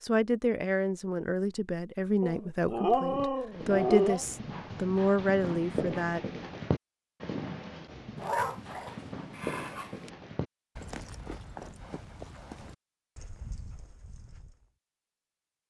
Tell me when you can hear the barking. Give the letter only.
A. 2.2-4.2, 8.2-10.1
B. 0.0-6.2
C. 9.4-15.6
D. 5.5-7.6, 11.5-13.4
A.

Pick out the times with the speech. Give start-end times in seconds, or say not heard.
0.0-6.2.